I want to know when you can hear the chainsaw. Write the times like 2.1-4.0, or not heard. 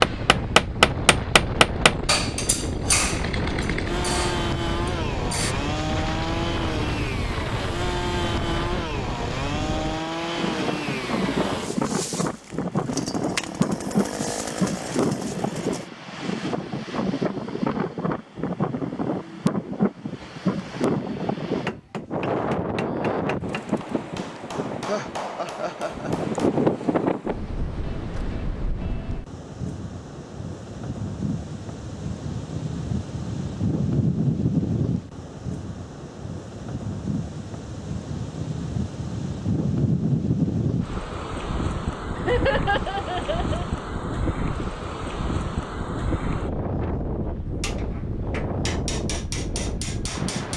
0.0-15.9.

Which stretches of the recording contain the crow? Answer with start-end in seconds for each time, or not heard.
not heard.